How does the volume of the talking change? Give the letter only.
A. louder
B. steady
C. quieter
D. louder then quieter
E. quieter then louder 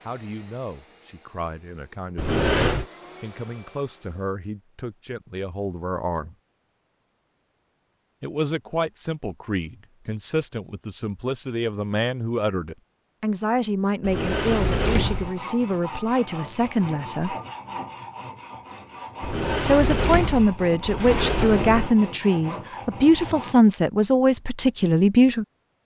A.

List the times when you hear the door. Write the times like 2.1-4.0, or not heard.
2.1-2.9, 14.0-15.3, 19.2-21.9.